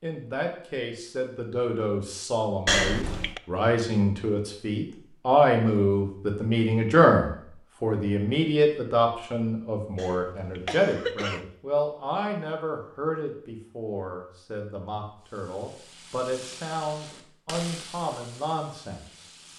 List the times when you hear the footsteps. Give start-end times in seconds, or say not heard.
not heard.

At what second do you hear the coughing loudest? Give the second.
3 s.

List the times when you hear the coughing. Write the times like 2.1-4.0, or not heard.
2.6-3.4, 9.9-11.4.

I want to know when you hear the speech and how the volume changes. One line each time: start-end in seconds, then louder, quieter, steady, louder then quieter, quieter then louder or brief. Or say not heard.
0.0-19.2 louder then quieter.